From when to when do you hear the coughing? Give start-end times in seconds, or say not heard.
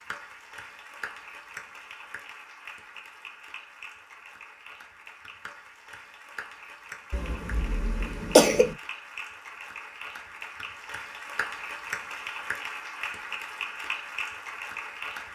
7.1-8.8.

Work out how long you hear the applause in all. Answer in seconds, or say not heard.
15 s.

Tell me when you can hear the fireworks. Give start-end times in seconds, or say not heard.
not heard.